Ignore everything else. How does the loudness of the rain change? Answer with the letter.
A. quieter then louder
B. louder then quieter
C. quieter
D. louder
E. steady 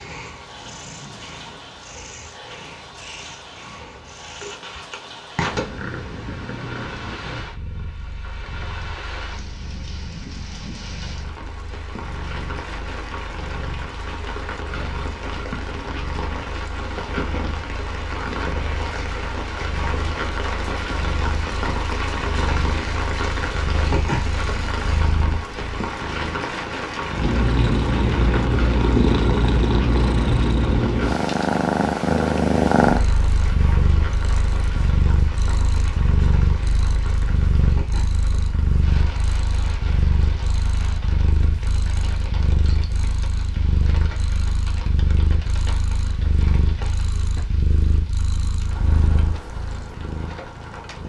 B.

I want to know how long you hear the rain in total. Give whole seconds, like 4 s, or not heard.
51 s.